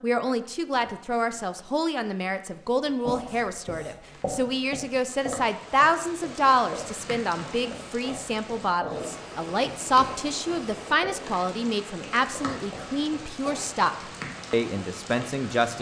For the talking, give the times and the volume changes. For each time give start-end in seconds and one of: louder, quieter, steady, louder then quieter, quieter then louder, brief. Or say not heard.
0.0-15.7 steady.